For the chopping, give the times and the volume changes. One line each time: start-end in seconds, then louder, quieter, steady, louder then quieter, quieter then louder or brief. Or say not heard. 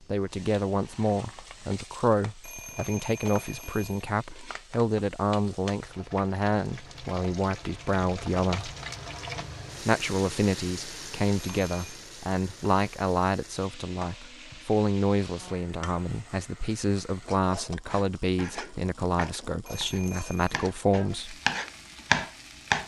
17.9-22.8 louder.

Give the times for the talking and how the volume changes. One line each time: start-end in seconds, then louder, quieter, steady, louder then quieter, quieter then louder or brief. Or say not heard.
0.1-8.7 steady
9.8-21.4 steady.